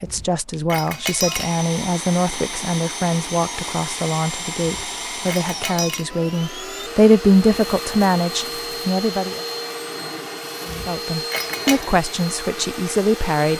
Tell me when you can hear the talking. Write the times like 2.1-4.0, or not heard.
0.0-9.4, 10.7-13.5.